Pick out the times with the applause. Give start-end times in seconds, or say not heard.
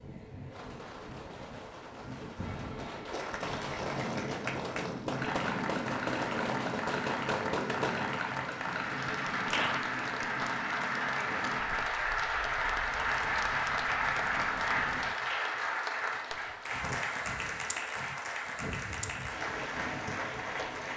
3.1-20.9.